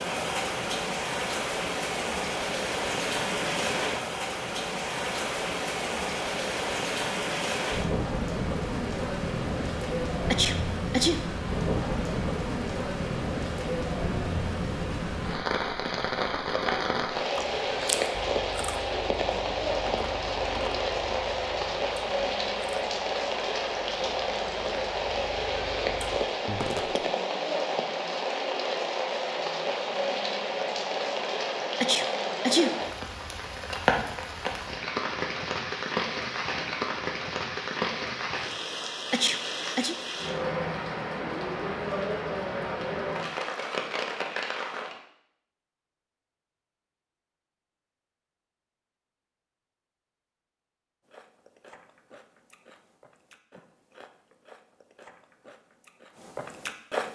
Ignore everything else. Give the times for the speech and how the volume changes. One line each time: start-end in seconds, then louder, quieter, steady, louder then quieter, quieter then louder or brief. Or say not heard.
not heard.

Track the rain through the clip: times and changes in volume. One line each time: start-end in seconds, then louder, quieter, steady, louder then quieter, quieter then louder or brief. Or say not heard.
0.0-45.0 steady.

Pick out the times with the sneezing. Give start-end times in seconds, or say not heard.
10.3-11.2, 31.8-32.8, 39.1-40.0.